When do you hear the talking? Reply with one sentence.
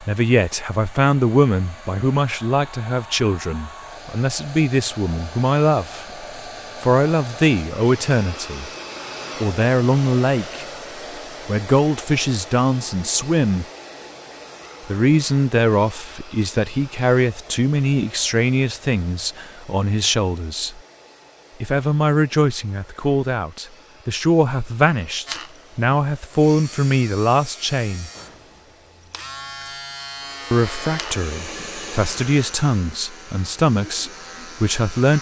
You can hear the talking from 0.0 to 8.7 s, from 9.4 to 10.7 s, from 11.4 to 13.7 s, from 14.8 to 20.8 s, from 21.6 to 28.1 s and from 30.5 to 35.1 s.